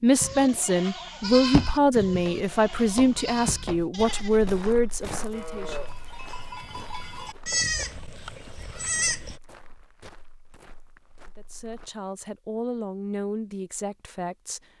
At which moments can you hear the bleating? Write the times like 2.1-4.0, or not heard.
0.1-9.4.